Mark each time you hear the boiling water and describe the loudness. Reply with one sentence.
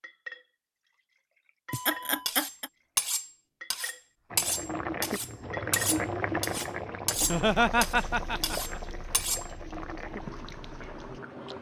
The boiling water can be heard from 4.3 to 11.5 s, getting quieter.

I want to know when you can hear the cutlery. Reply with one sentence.
You can hear the cutlery from 1.7 to 9.5 s.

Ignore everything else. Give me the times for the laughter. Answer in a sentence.
The laughter can be heard from 1.7 to 2.7 s and from 7.2 to 8.8 s.